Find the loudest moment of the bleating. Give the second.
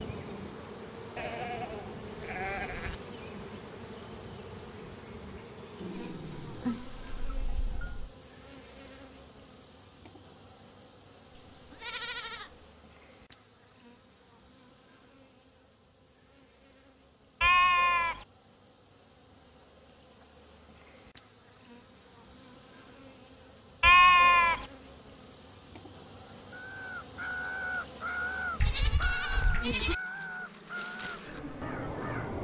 24 s.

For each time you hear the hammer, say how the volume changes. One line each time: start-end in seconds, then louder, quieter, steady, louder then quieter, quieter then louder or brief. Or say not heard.
not heard.